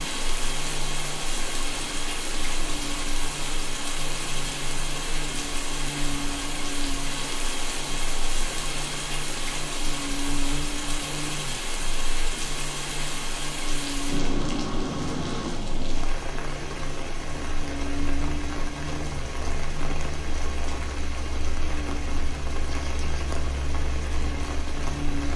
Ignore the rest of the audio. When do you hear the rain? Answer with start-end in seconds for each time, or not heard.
0.0-25.3.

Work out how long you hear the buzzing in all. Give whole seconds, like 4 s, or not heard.
25 s.